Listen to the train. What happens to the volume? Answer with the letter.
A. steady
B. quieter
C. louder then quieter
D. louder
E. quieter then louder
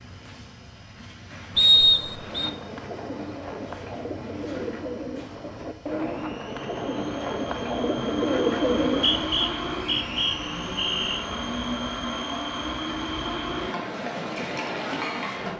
D.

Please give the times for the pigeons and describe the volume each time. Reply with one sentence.
You can hear the pigeons from 2.2 to 9.3 s, getting louder.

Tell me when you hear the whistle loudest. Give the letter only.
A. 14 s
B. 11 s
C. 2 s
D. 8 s
C.